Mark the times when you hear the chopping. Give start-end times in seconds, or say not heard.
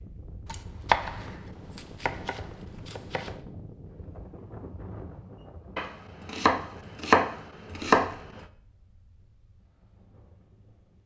0.5-3.4, 5.8-8.4.